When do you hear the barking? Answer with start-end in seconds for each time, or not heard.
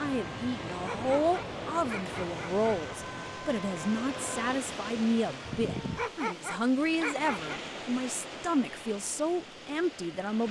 0.8-2.8, 6.0-7.6.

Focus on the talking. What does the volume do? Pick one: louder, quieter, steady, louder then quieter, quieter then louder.
steady.